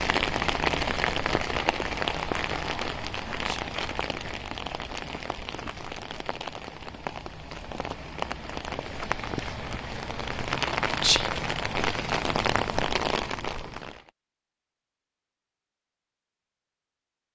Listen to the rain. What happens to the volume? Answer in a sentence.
The volume of the rain goes down, then up.